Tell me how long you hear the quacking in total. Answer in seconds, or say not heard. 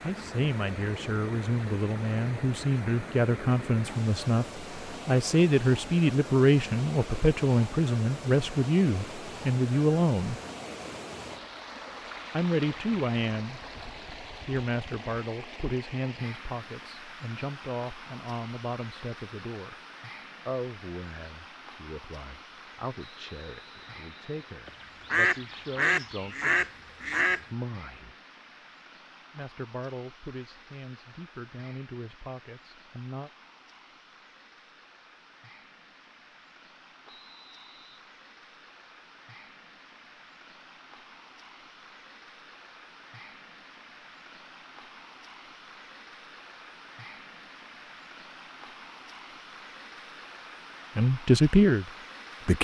3 s.